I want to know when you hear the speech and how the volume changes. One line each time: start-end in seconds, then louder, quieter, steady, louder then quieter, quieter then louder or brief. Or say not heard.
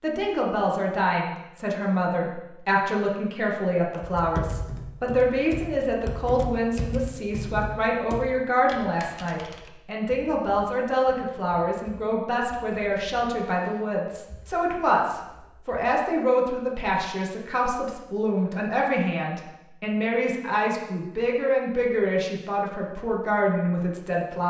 0.0-24.4 steady.